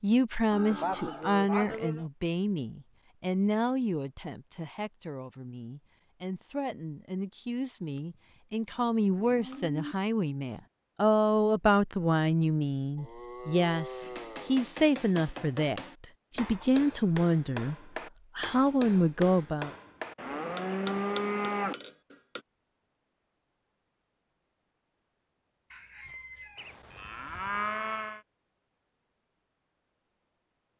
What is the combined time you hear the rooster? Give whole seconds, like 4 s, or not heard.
2 s.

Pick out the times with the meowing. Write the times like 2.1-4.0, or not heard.
not heard.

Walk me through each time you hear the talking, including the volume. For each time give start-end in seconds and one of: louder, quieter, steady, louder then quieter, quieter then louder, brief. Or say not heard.
0.0-17.8 quieter then louder
18.4-19.7 brief.